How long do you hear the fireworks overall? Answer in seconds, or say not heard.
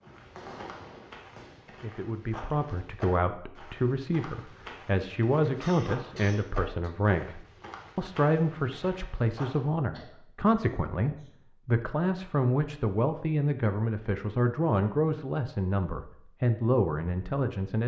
2 s.